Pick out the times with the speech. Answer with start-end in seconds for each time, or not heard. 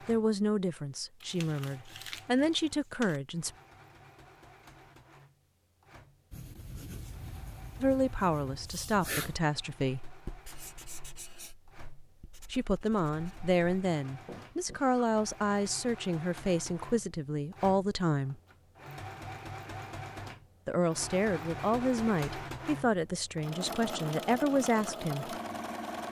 0.1-3.5, 7.8-10.1, 12.5-18.4, 20.6-25.4.